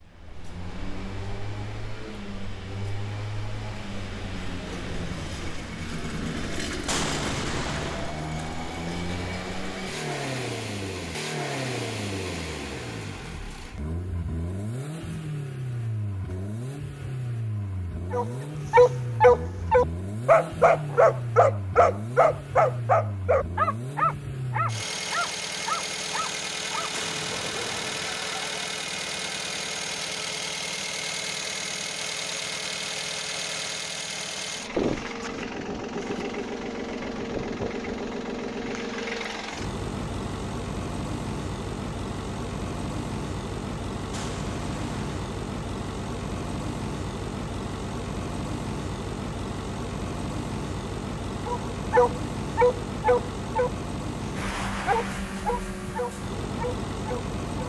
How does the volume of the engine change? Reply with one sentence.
The loudness of the engine stays about the same.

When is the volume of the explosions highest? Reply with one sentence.
The volume of the explosions peaks at 7 seconds.